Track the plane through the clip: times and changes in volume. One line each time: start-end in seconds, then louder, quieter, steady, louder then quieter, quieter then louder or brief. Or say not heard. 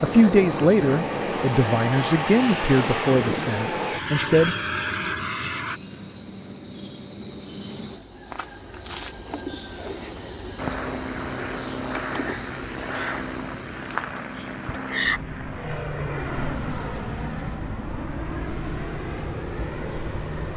0.0-5.8 steady
10.6-20.5 steady.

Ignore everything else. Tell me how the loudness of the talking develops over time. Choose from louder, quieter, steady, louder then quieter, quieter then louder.
quieter.